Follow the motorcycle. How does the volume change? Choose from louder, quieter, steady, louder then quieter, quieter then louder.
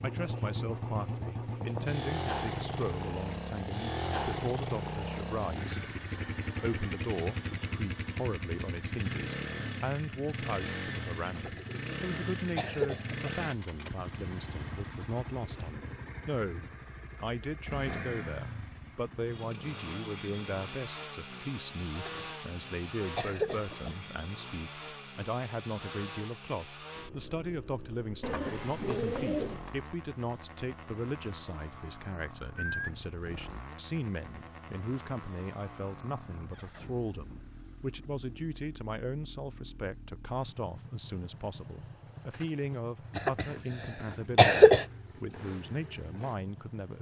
quieter.